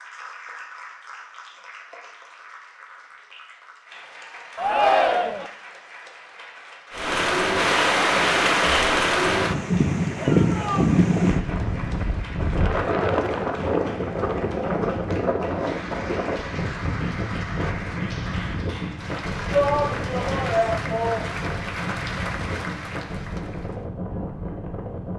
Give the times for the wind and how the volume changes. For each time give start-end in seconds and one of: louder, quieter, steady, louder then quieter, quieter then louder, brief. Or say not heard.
6.9-25.1 quieter.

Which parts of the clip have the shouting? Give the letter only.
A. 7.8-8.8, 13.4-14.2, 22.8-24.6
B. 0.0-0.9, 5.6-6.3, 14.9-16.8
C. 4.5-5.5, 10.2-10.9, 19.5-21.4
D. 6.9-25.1
C.